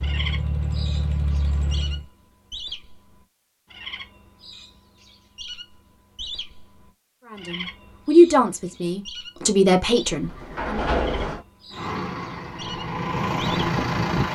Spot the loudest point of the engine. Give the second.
14 s.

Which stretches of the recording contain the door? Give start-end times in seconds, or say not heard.
10.1-11.4.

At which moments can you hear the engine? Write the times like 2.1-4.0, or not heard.
0.0-2.0, 11.7-14.2.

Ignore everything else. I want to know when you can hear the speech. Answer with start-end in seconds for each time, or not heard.
7.3-10.8.